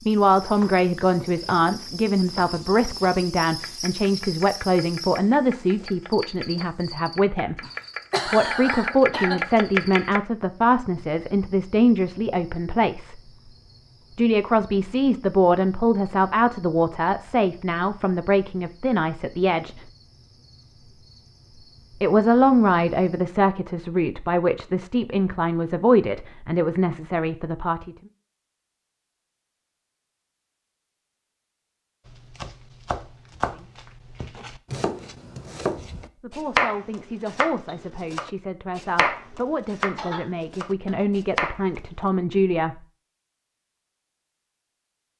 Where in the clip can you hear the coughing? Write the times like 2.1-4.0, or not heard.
7.6-9.4, 40.0-41.0.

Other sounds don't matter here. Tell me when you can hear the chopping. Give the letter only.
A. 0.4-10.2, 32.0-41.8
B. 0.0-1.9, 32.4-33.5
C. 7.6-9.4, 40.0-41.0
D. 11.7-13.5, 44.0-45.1
A.